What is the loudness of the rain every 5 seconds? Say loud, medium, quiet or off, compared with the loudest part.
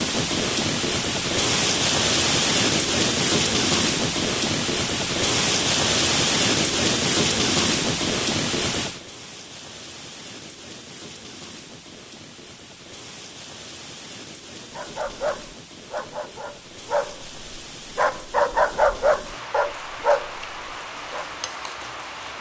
loud, loud, quiet, quiet, quiet.